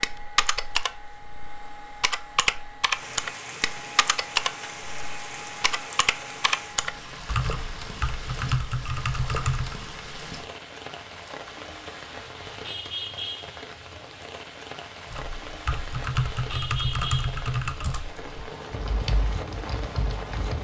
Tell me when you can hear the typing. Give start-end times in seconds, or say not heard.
0.0-9.8, 15.1-20.6.